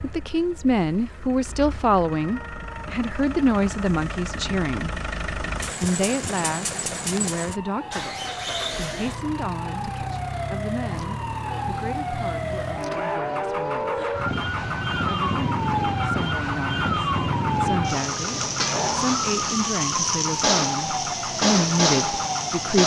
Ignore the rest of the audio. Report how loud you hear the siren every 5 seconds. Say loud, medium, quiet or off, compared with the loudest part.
quiet, quiet, medium, loud, loud.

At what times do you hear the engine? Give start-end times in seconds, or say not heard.
0.0-22.8.